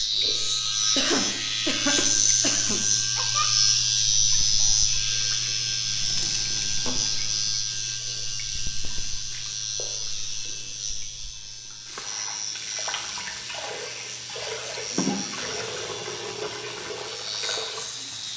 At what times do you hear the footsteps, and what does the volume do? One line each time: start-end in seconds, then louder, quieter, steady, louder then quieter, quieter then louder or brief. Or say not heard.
not heard.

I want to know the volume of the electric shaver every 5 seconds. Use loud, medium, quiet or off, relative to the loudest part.
loud, medium, quiet, quiet.